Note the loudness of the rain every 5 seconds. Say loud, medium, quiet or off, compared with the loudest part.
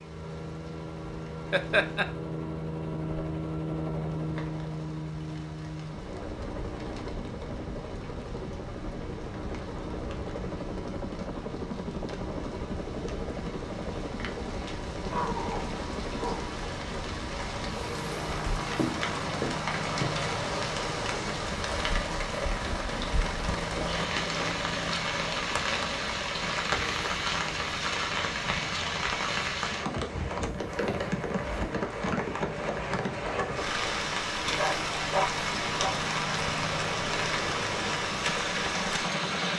quiet, quiet, quiet, medium, loud, loud, loud, loud.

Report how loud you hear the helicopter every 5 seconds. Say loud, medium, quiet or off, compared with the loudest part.
loud, loud, loud, loud, loud, medium, medium, loud.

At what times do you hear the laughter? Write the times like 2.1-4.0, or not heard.
1.5-2.0.